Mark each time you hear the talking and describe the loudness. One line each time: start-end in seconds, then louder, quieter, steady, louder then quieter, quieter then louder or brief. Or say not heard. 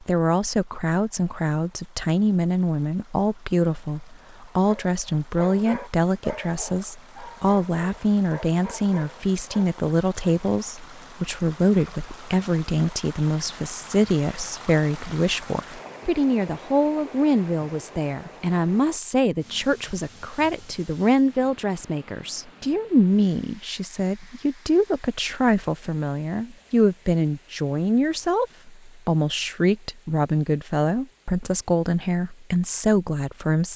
0.0-33.7 steady.